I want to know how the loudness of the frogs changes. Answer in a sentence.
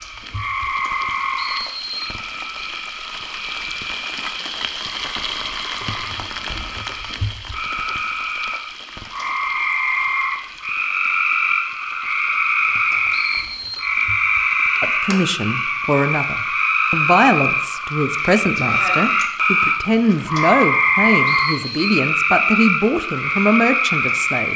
The volume of the frogs goes up.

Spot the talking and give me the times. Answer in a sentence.
You can hear the talking from 14.8 to 24.5 s.